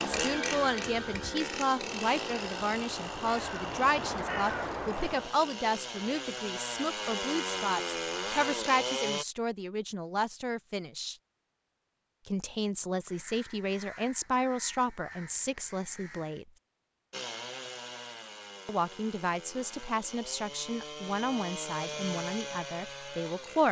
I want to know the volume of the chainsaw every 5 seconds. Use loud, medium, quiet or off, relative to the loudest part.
loud, loud, off, medium, medium.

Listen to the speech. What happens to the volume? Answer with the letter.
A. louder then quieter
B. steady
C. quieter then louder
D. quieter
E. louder
B.